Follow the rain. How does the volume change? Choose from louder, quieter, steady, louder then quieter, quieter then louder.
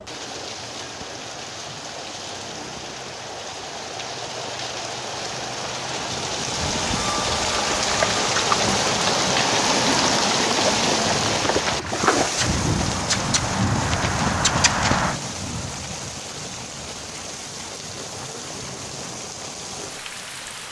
louder then quieter.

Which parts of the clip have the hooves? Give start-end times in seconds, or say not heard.
6.5-15.2.